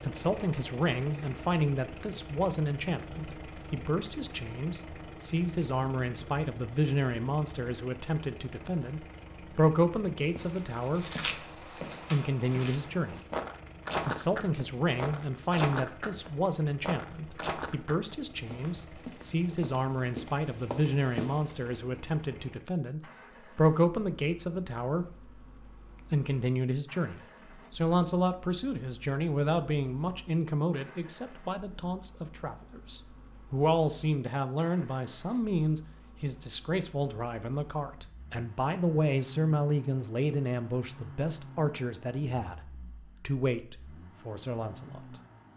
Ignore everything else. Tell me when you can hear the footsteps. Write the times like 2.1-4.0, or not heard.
10.3-21.8.